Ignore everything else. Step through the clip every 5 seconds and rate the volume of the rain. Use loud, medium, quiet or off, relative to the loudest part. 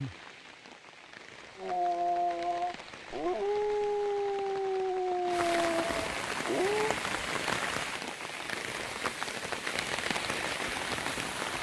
quiet, loud, loud.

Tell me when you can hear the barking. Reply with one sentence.
You can hear the barking from 1.6 to 7.0 s.